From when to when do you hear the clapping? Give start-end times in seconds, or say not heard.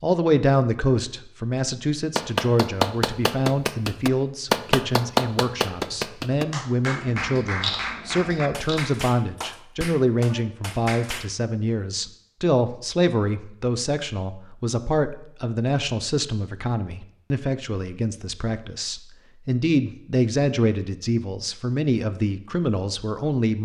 2.1-11.2.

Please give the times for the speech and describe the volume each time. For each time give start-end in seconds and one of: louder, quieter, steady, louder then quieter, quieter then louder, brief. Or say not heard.
0.0-23.6 steady.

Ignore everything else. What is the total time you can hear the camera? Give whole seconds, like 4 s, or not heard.
2 s.